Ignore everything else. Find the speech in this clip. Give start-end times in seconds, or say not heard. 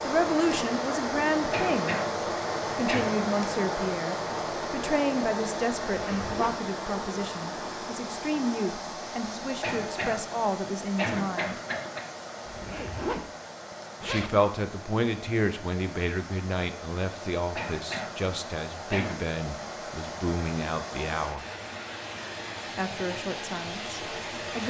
0.0-1.9, 2.8-11.6, 14.0-21.4, 22.8-24.6.